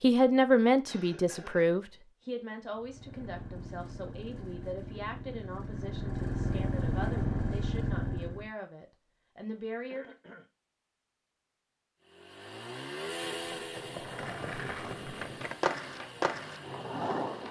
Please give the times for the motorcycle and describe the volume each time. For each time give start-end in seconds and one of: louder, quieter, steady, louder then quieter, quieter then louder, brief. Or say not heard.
2.7-8.5 louder
12.0-17.4 quieter.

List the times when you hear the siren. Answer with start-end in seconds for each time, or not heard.
not heard.